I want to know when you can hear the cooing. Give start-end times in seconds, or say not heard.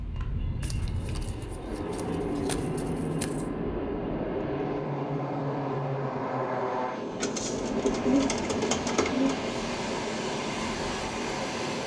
0.6-3.5, 7.2-9.4.